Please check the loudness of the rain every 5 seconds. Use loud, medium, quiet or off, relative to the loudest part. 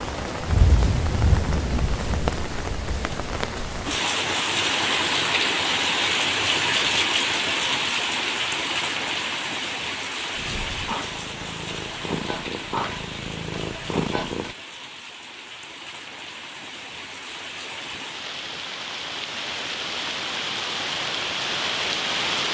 loud, loud, medium, medium, loud.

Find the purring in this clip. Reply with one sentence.
You can hear the purring from 10.3 to 14.6 s.